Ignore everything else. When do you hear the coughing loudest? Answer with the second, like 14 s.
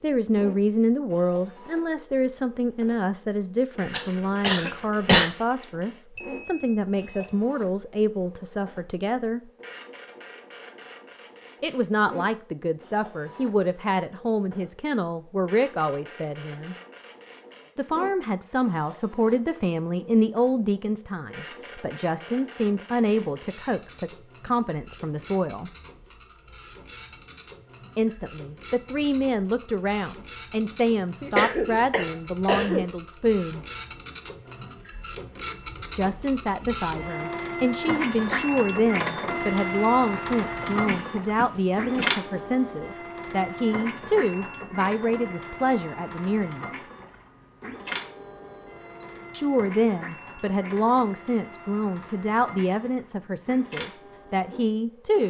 5 s.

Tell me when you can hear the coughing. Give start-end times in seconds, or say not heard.
3.9-5.3, 31.2-32.9, 40.6-42.1.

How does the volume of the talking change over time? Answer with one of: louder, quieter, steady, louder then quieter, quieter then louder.
steady.